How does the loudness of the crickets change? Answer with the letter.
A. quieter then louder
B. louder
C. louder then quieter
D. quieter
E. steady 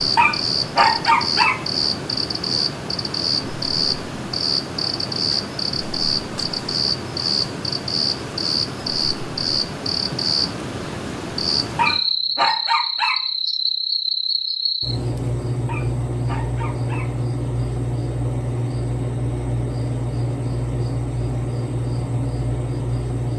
E.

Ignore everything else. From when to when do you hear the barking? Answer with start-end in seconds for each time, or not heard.
0.1-1.6, 11.8-13.2, 15.7-17.1.